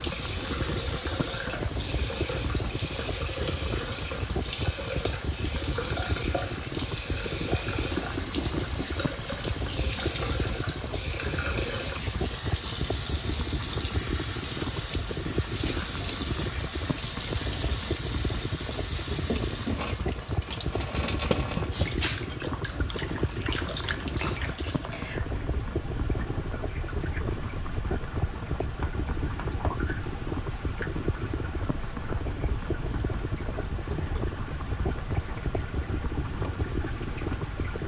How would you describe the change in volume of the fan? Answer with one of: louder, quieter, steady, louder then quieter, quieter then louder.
steady.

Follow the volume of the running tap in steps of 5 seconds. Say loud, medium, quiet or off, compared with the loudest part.
loud, loud, loud, loud, loud, medium, medium, medium.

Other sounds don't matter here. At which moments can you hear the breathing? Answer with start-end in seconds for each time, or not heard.
not heard.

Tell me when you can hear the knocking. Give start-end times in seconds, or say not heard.
8.0-9.1, 21.3-22.1.